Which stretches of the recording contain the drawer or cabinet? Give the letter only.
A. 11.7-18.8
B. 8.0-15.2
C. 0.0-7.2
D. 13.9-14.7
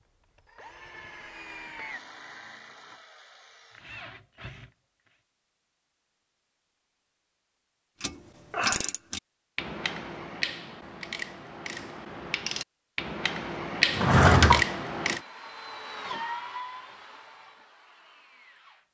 D.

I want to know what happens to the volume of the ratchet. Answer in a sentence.
The volume of the ratchet goes down, then up.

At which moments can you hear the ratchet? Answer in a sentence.
The ratchet can be heard from 8.0 to 15.2 s.